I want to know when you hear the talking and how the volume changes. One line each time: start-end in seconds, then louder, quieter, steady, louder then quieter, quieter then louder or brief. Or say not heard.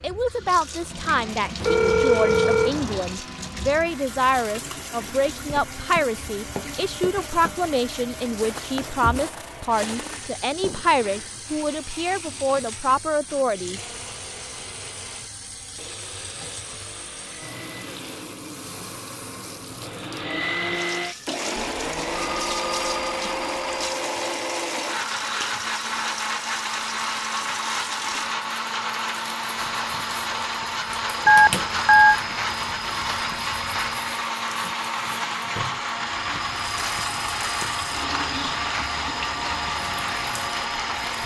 0.0-13.8 steady.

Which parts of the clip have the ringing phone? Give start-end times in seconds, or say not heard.
1.6-3.1, 21.6-23.9, 31.2-32.2.